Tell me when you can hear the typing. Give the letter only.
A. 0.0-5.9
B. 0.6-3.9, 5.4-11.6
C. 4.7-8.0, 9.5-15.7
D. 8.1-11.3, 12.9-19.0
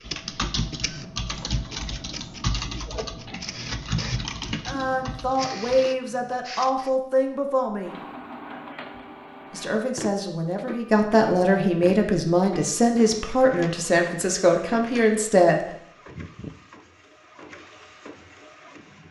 A.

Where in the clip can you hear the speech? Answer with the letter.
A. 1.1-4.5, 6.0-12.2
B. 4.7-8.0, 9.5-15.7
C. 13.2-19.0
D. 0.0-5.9
B.